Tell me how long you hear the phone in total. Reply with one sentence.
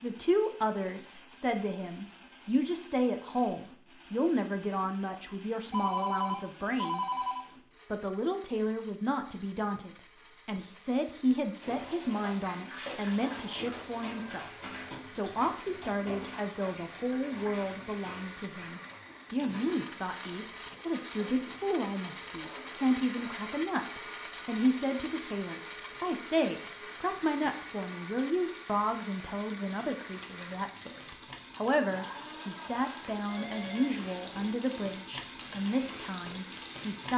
You can hear the phone for 3 seconds altogether.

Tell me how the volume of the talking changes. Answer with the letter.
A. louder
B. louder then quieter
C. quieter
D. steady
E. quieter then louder
D.